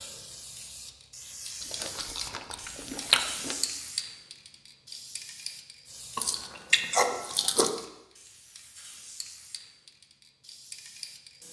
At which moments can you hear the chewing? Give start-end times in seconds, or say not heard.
1.6-3.5, 6.2-7.8.